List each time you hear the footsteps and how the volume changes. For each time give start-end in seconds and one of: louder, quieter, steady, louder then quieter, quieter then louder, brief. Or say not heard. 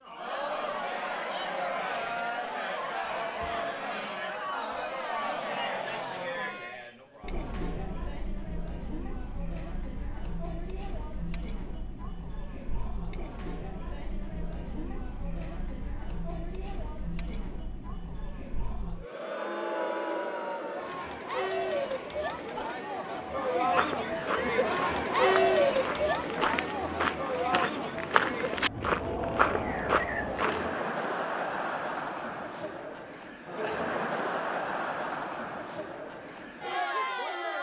23.6-30.8 louder.